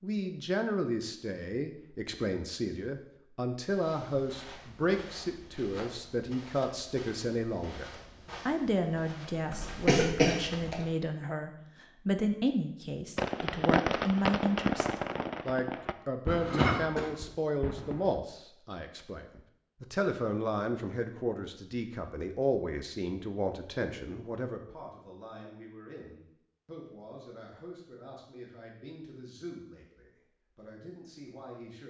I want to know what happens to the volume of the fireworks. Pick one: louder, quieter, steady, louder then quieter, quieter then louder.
quieter.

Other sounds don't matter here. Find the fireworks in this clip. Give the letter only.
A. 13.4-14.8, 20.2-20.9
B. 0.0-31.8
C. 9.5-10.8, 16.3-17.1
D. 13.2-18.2
D.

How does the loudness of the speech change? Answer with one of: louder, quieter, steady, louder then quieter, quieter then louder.
quieter.